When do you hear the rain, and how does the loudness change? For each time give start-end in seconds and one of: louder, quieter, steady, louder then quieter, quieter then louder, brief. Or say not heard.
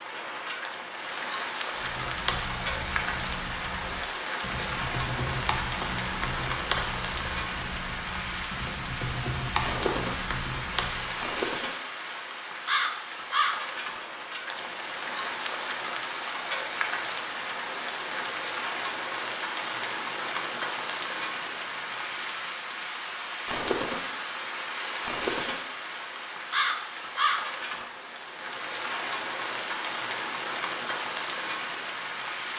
0.0-32.5 steady.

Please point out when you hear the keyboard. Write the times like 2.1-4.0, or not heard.
1.8-11.2.